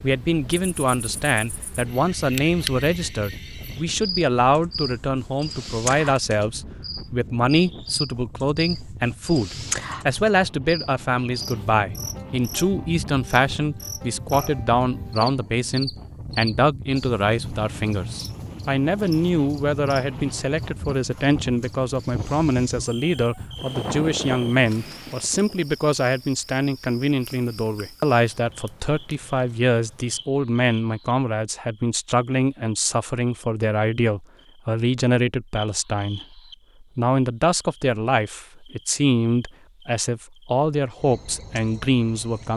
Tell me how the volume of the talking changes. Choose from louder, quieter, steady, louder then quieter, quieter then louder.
steady.